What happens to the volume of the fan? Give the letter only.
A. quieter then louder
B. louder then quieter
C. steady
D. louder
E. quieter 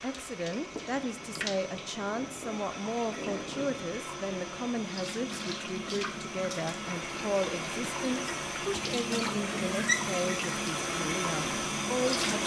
D.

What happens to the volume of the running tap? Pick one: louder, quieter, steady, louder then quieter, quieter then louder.
louder.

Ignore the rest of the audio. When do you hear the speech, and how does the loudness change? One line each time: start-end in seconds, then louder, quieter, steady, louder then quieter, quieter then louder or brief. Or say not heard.
0.0-12.4 steady.